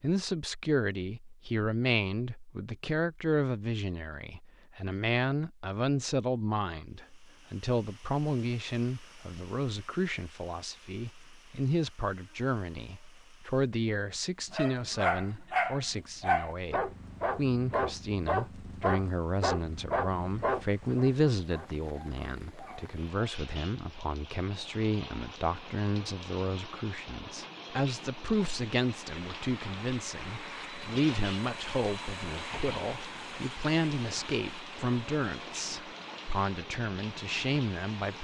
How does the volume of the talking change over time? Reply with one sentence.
The loudness of the talking stays about the same.